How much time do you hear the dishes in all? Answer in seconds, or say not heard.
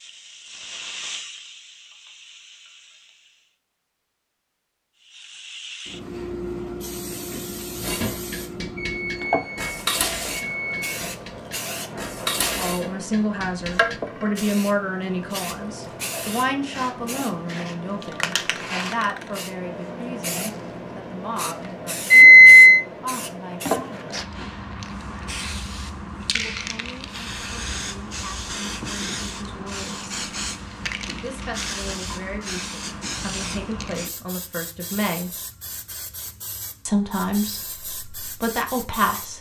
6 s.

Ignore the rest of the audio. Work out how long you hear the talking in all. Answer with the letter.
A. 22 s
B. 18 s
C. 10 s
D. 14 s
A.